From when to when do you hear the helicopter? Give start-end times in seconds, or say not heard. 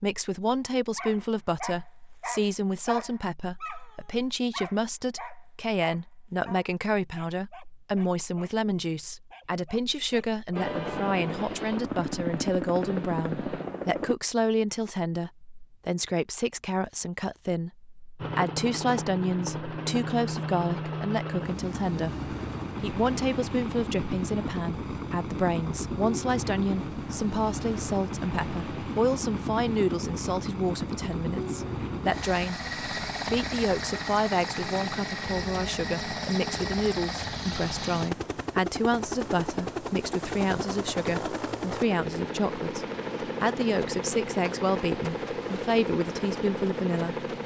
10.6-14.2, 18.1-47.4.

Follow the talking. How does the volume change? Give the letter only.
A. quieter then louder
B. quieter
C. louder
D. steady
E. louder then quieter
D.